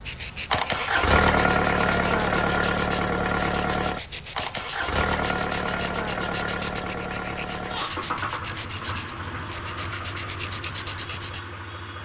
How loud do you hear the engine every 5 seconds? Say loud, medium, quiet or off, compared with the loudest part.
loud, medium, quiet.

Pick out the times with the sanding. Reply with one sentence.
You can hear the sanding from 0.0 to 11.4 s.